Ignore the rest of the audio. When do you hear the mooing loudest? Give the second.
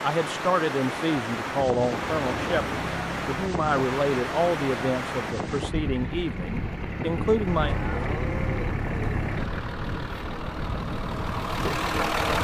8 s.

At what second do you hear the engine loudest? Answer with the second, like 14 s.
12 s.